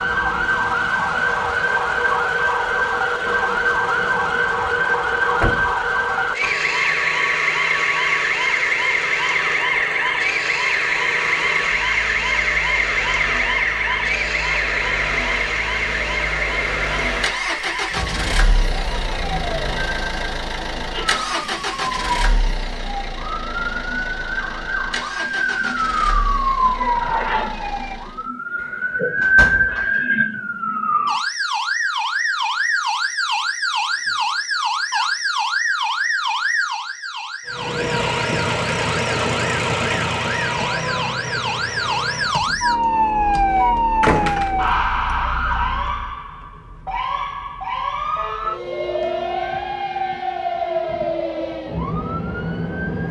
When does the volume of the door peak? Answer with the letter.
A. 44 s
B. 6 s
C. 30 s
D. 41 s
A.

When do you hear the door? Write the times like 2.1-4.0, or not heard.
5.3-5.8, 28.6-29.9, 44.0-44.8.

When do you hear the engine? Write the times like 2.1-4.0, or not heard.
0.0-28.2, 37.5-46.2.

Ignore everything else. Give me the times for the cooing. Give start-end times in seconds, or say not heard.
not heard.